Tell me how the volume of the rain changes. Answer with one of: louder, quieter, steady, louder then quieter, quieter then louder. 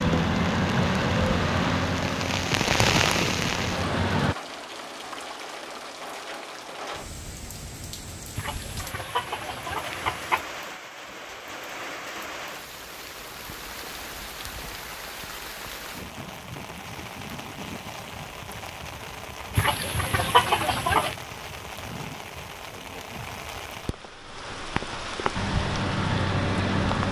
quieter.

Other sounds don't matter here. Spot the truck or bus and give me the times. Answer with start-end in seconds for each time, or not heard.
0.0-4.3, 25.4-27.0.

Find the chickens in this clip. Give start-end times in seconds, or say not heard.
8.3-10.4, 19.6-21.1.